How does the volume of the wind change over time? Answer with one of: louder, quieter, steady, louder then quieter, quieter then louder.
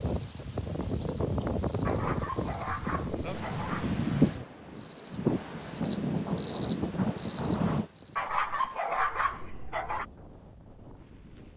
quieter.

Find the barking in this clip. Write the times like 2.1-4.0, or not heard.
1.9-3.9, 8.2-10.1.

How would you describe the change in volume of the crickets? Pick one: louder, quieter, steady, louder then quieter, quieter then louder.
louder.